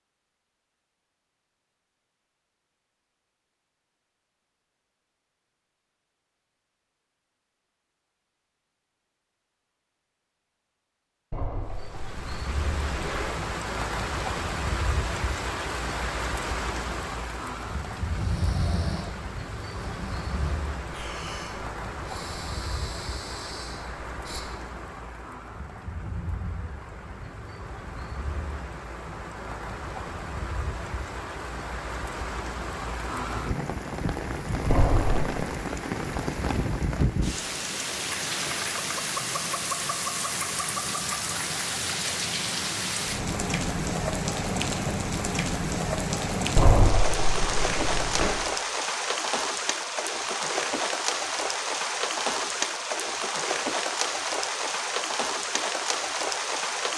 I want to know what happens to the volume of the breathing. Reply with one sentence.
The loudness of the breathing goes down.